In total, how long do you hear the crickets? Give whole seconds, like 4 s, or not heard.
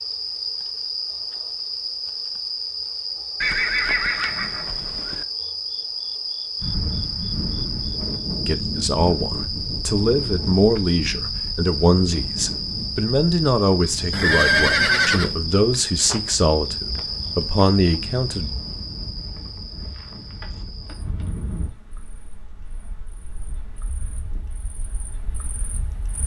26 s.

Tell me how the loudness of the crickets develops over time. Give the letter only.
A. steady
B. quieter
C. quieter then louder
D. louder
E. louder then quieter
B.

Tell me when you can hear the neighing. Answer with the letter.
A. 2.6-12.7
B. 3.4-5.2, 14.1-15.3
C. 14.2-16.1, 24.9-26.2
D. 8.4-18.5
B.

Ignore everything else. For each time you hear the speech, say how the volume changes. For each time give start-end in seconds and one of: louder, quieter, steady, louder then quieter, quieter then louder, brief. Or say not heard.
8.4-18.5 steady.